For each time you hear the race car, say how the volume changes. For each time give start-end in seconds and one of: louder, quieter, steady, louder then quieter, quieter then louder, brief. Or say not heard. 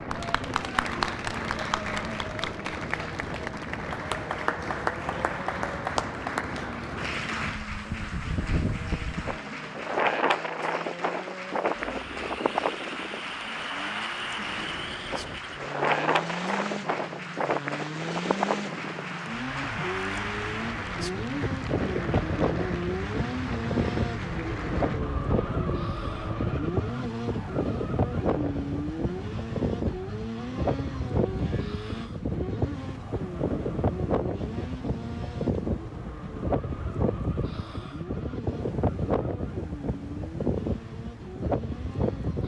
0.0-42.4 louder then quieter.